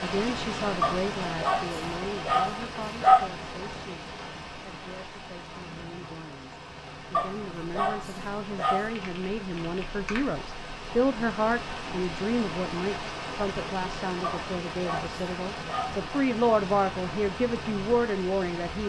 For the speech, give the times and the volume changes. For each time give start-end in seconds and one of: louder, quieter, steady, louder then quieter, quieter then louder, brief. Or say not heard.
0.0-18.8 quieter then louder.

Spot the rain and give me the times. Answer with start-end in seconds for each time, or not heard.
0.0-18.8.